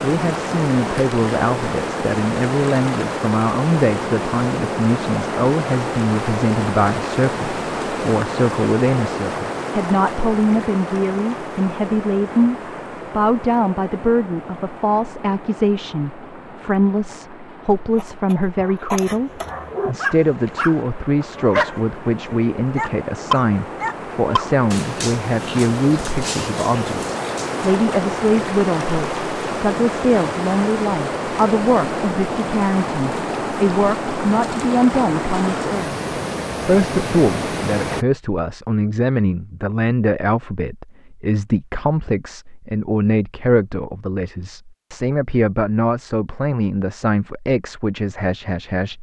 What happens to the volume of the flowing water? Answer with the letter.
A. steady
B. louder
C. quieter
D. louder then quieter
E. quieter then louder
E.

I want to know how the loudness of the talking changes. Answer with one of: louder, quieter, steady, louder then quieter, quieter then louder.
steady.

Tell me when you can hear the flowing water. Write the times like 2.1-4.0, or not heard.
0.0-38.0.